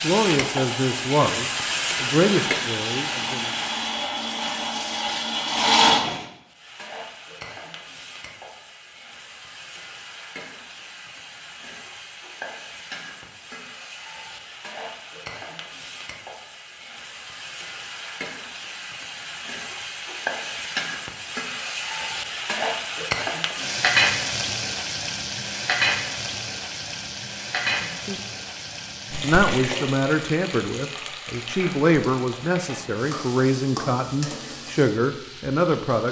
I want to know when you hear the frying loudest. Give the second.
24 s.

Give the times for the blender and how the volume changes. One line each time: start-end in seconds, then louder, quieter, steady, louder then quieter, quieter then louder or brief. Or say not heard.
0.2-6.2 louder.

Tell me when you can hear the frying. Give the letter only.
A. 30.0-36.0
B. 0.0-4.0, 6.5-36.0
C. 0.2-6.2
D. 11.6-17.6
B.